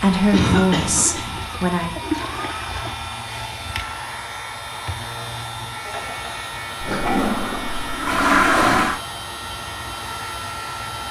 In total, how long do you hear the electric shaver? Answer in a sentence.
The electric shaver can be heard for 11 seconds in total.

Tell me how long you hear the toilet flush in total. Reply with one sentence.
You can hear the toilet flush for 4 seconds altogether.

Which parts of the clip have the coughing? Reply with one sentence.
You can hear the coughing from 0.3 to 1.4 s and from 5.8 to 6.3 s.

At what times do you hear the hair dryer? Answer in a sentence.
You can hear the hair dryer from 0.0 to 11.0 s.